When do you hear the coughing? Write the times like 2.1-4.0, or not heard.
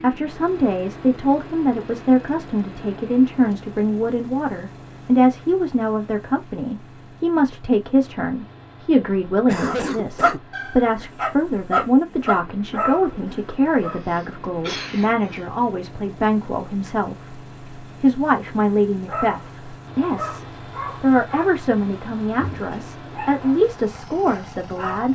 9.4-10.4, 14.1-15.4.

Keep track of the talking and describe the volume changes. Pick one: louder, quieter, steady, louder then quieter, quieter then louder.
steady.